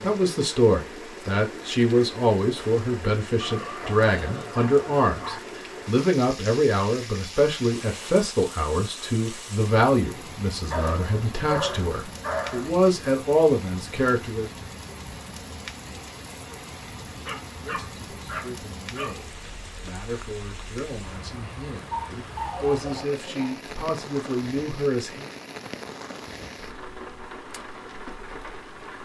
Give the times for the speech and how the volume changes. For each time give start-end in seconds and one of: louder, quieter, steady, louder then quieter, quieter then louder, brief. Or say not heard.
0.0-14.5 steady
17.6-25.3 louder.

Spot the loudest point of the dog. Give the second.
12 s.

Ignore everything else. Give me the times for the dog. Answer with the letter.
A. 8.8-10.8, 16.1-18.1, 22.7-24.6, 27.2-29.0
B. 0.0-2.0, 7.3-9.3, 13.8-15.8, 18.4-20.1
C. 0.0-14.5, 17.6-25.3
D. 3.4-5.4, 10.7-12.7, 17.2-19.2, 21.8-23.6
D.